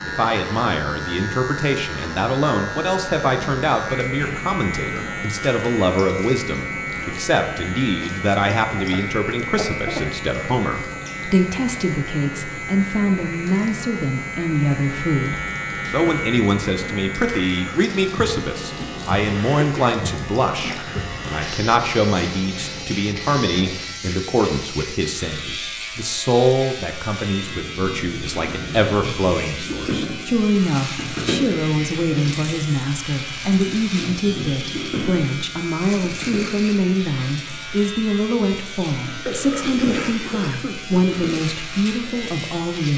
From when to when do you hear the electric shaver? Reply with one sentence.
The electric shaver can be heard from 0.0 to 42.9 s.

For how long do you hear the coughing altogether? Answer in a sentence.
The coughing can be heard for 5 seconds in total.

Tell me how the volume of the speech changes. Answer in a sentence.
The loudness of the speech stays about the same.